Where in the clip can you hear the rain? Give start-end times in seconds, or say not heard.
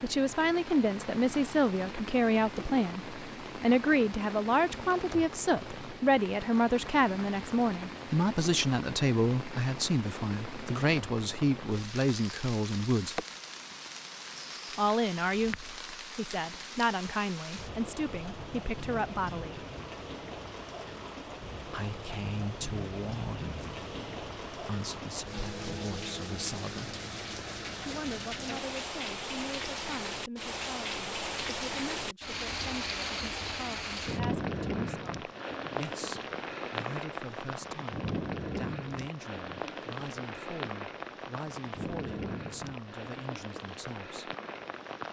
0.0-45.0.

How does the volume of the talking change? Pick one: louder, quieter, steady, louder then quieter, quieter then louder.
quieter.